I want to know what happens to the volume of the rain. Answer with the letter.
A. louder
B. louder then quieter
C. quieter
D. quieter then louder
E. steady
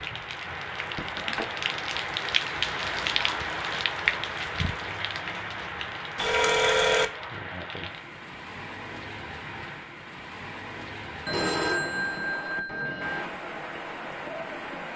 C.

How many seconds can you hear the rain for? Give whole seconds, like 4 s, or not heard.
15 s.